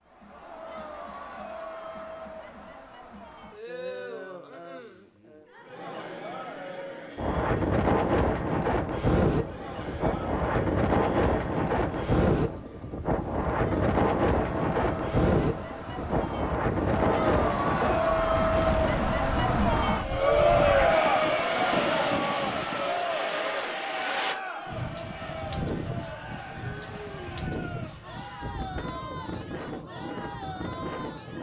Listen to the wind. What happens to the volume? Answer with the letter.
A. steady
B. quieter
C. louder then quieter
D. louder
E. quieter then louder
B.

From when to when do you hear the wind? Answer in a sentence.
The wind can be heard from 7.2 to 31.3 s.